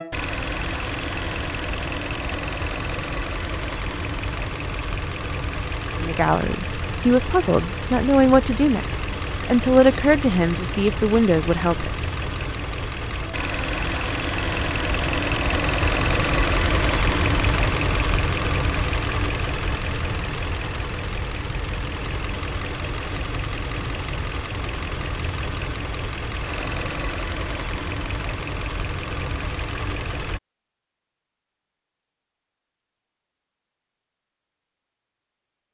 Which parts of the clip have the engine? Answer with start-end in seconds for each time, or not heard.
0.0-30.4.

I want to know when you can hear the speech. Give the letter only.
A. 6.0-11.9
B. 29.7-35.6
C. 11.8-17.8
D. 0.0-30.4
A.